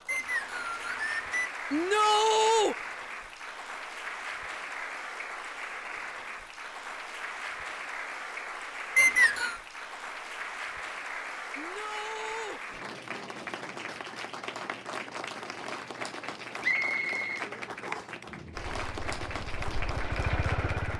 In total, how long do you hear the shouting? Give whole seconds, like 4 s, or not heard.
2 s.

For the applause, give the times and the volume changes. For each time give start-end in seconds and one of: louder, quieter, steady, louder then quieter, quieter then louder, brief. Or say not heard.
0.0-20.9 steady.